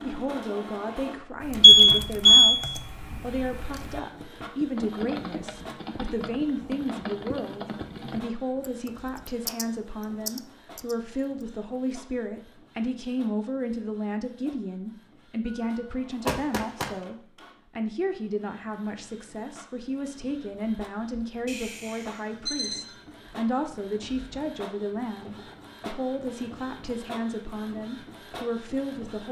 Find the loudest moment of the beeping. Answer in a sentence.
The volume of the beeping peaks at 2 seconds.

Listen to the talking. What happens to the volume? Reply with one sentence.
The volume of the talking stays about the same.